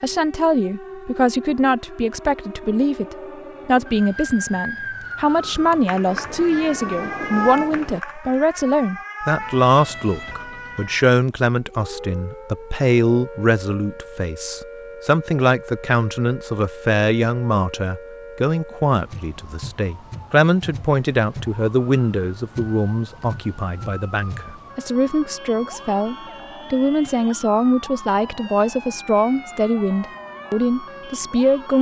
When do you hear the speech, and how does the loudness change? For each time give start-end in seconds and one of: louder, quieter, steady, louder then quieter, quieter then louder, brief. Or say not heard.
0.0-31.7 steady.